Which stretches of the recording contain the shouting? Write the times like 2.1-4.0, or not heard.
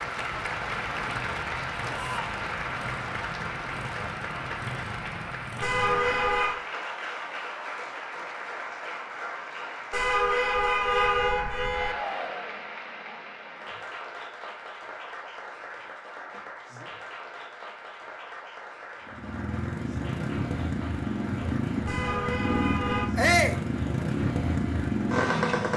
1.9-2.4, 11.8-12.7, 23.1-23.6.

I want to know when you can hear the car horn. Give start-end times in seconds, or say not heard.
5.6-6.6, 9.9-11.9, 21.9-23.1.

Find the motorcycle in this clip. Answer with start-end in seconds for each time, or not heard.
0.0-6.5, 19.1-25.7.